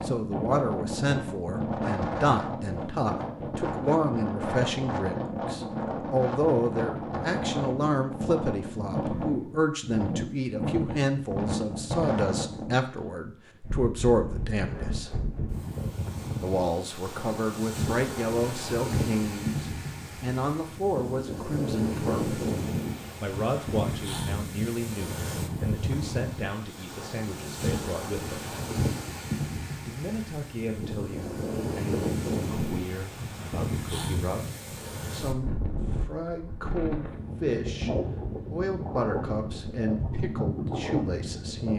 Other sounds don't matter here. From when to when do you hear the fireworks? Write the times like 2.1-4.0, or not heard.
not heard.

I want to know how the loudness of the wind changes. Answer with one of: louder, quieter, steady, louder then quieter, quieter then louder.
steady.